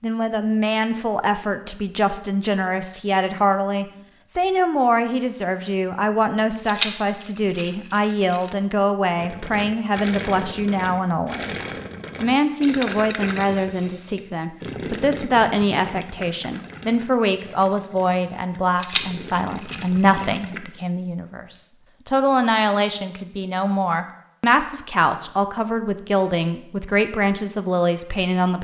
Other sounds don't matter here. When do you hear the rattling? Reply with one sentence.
The rattling can be heard from 6.7 to 8.5 s and from 18.8 to 20.5 s.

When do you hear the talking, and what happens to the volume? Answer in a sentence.
The talking can be heard from 0.0 to 28.6 s, at a steady volume.